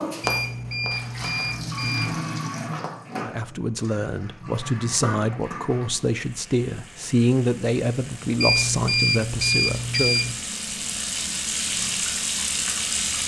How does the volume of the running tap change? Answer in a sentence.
The loudness of the running tap goes down, then up.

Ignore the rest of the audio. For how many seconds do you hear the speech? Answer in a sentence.
You can hear the speech for 7 seconds altogether.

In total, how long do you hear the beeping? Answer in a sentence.
You can hear the beeping for 4 seconds altogether.